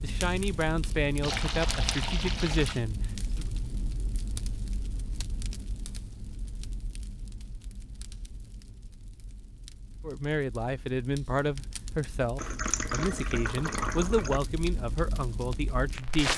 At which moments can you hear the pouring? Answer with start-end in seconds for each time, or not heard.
1.2-2.9, 12.3-14.4.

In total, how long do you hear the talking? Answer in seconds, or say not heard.
10 s.